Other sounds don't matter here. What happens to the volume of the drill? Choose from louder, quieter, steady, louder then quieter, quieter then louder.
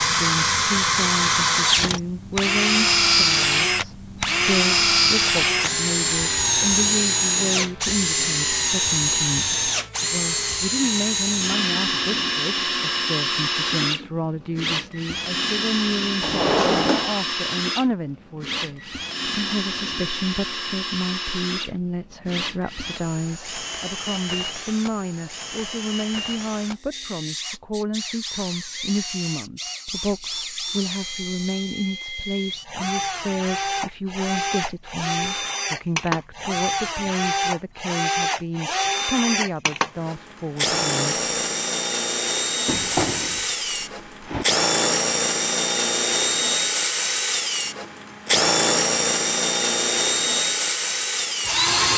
quieter then louder.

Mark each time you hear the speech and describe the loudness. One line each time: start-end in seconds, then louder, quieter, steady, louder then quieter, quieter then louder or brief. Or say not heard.
0.0-41.5 steady.